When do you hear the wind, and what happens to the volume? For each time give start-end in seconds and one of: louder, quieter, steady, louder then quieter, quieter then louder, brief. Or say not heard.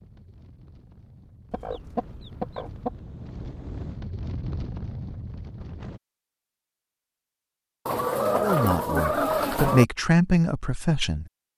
0.0-6.0 louder.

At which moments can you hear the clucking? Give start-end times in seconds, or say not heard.
1.5-3.0, 7.8-9.8.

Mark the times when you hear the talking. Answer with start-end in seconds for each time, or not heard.
8.4-11.2.